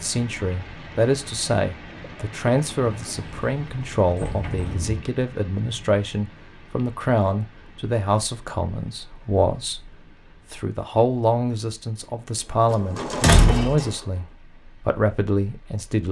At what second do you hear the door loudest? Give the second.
13 s.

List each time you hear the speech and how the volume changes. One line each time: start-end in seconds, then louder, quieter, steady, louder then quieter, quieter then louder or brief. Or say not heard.
0.0-16.0 steady.